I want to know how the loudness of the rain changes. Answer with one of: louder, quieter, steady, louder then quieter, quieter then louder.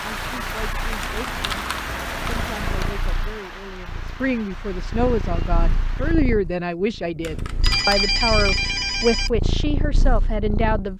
quieter.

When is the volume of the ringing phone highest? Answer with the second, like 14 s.
8 s.